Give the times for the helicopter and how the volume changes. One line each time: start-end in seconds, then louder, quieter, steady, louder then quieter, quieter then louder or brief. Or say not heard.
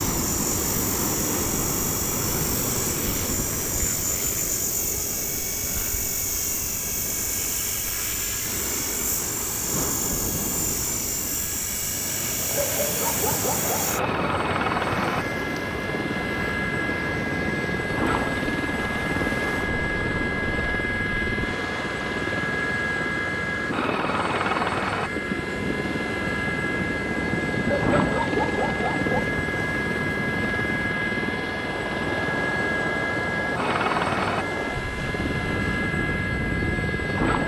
0.0-37.4 steady.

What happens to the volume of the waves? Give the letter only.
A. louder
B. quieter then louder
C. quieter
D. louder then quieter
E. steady
E.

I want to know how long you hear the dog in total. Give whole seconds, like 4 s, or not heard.
3 s.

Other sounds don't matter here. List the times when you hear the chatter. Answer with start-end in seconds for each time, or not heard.
not heard.